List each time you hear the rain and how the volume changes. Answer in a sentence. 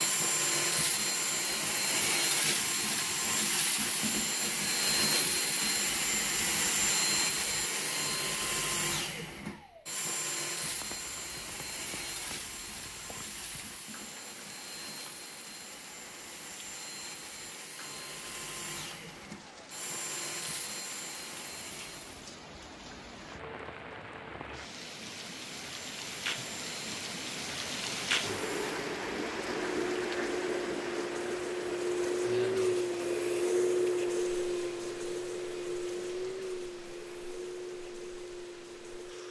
You can hear the rain from 10.6 to 39.2 s, getting louder then quieter.